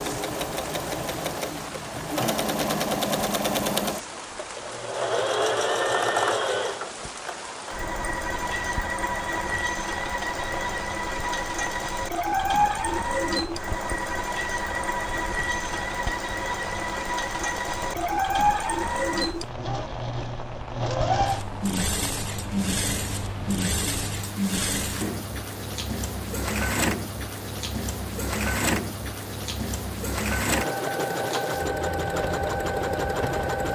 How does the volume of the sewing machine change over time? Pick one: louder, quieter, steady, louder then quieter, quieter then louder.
steady.